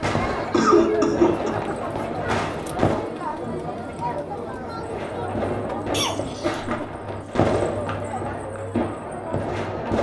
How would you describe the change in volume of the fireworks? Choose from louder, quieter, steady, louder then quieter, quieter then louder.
steady.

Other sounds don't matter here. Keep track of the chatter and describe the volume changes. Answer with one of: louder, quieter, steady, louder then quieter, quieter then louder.
quieter.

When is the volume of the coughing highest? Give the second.
1 s.